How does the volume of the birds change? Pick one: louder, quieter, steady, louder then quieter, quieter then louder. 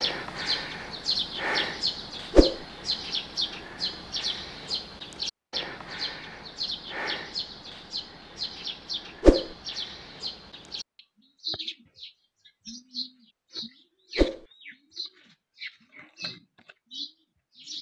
quieter.